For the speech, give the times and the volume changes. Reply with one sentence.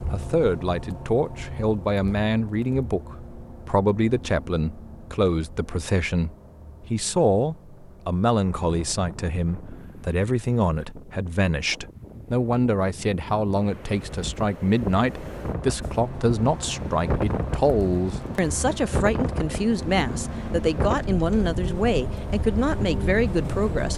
You can hear the speech from 0.1 to 23.9 s, at a steady volume.